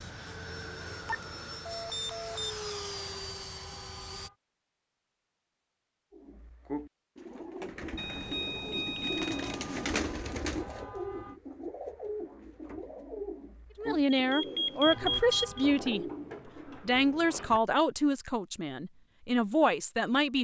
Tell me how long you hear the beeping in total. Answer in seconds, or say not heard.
5 s.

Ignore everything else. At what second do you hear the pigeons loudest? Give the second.
10 s.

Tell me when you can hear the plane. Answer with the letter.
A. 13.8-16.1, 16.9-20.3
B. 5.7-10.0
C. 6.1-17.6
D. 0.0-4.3
D.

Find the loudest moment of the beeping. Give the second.
15 s.